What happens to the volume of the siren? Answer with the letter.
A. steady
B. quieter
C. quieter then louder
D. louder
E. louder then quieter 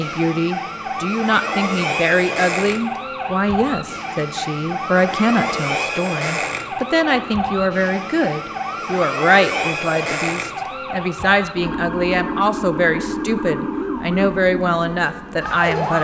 A.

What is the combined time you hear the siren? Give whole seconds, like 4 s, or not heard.
16 s.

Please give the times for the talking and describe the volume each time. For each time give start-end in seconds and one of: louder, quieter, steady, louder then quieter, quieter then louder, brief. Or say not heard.
0.0-15.9 steady.